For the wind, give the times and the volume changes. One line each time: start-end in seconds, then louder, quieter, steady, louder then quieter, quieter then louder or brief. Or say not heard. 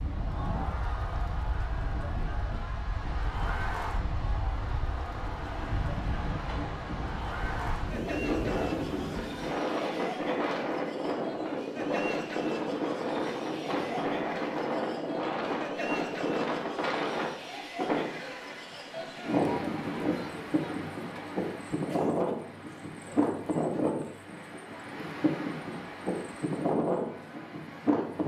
0.0-28.2 louder.